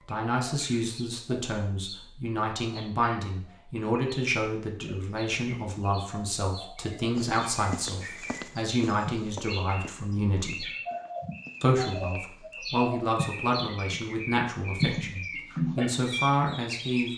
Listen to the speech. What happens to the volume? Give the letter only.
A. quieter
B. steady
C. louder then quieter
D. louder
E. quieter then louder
B.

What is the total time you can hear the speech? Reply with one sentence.
You can hear the speech for 16 seconds altogether.